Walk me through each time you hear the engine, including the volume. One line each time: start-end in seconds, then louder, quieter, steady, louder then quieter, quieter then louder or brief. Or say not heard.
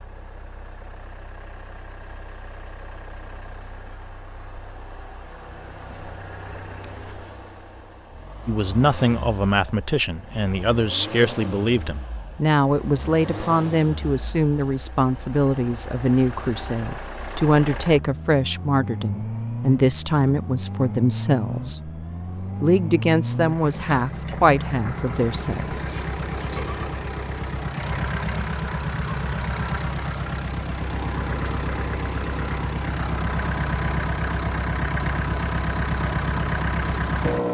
0.0-37.4 louder.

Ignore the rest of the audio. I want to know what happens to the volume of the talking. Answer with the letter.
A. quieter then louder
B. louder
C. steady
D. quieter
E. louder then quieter
C.